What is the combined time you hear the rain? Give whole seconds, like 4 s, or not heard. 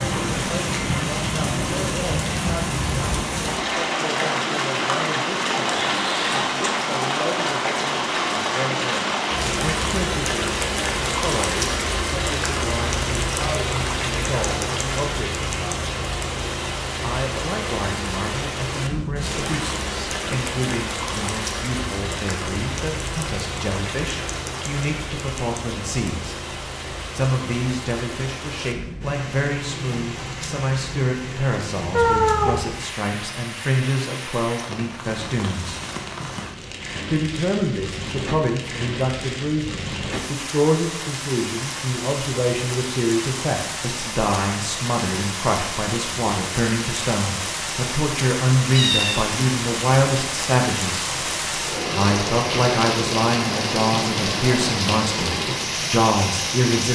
57 s.